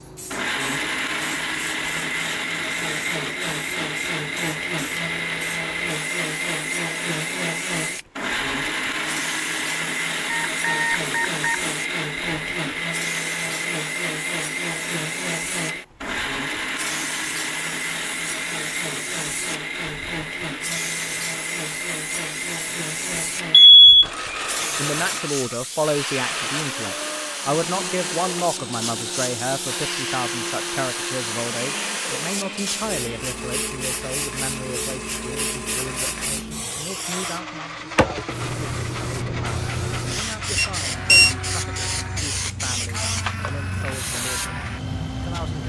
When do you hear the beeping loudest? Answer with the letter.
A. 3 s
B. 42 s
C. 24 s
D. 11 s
C.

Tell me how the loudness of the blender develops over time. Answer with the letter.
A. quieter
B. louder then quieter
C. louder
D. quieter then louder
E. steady
A.